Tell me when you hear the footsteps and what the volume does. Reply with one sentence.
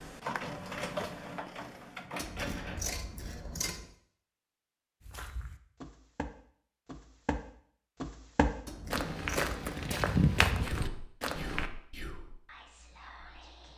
The footsteps can be heard from 5.0 to 11.7 s, getting louder.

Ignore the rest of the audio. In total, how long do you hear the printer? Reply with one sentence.
The printer can be heard for 3 seconds in total.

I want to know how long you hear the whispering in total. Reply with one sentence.
The whispering can be heard for 3 seconds in total.